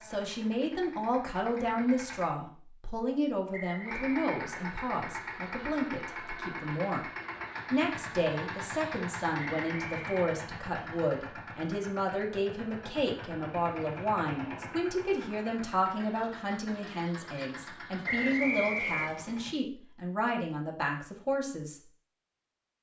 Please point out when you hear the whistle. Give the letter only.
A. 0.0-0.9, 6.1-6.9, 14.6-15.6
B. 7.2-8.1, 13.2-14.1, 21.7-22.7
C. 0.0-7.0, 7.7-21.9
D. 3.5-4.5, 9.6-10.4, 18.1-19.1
D.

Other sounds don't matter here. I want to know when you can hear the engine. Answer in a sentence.
The engine can be heard from 0.0 to 2.3 s and from 3.8 to 19.6 s.